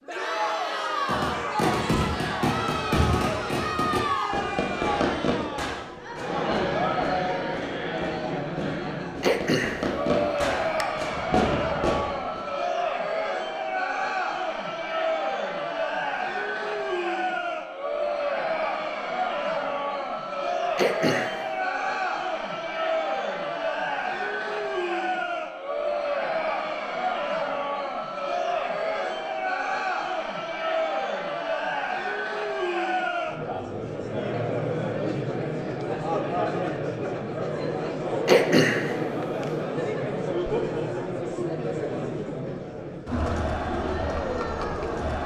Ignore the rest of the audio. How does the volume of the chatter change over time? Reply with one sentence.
The loudness of the chatter stays about the same.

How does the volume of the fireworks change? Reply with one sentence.
The loudness of the fireworks goes down, then up.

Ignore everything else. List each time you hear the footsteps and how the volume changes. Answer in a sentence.
You can't hear the footsteps here.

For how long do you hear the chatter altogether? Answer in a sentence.
You can hear the chatter for 45 seconds altogether.